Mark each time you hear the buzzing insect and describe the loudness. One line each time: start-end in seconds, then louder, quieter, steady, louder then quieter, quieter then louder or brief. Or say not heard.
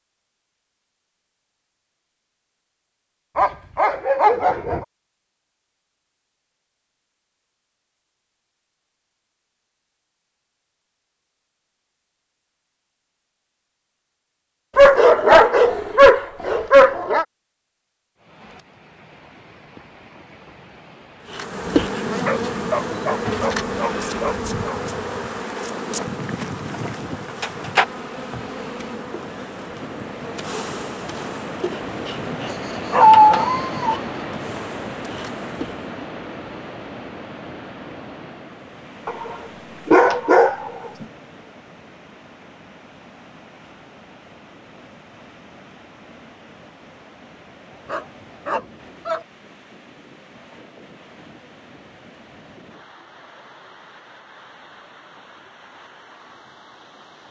21.3-35.9 quieter.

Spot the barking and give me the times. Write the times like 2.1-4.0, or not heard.
3.4-4.8, 14.8-17.2, 22.2-24.8, 32.5-34.0, 39.0-41.0, 47.9-49.2.